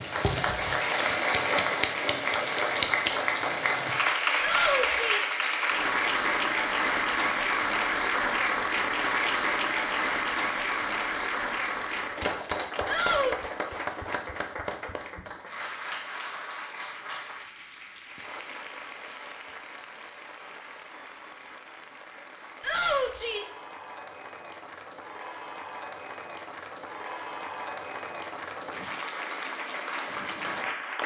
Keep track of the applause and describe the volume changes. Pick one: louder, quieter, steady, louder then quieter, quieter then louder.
quieter then louder.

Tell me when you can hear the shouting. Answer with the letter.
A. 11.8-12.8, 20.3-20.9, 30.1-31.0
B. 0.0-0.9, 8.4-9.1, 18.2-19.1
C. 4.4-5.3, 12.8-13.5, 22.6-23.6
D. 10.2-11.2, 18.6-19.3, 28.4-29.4
C.